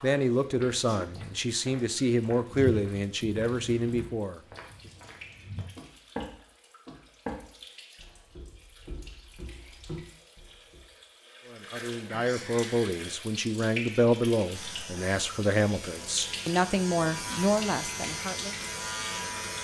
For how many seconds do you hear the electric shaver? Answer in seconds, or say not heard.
5 s.